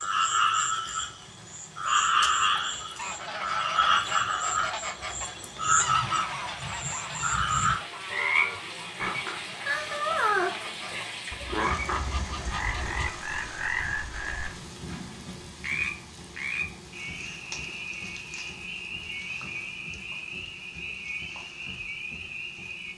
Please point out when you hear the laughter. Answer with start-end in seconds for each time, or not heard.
not heard.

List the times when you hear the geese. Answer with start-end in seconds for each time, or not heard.
3.0-13.2.